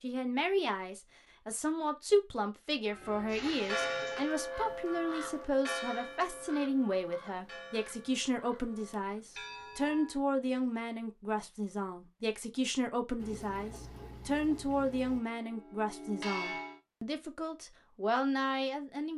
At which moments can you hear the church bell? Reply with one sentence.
You can hear the church bell from 2.9 to 10.2 s and from 15.2 to 16.8 s.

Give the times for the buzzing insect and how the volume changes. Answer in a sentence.
You can't hear the buzzing insect here.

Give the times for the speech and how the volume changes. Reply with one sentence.
You can hear the speech from 0.0 to 19.1 s, at a steady volume.